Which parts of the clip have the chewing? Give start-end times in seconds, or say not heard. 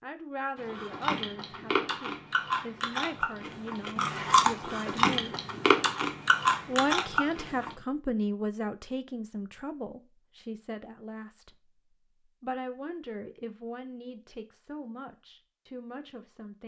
0.6-7.8.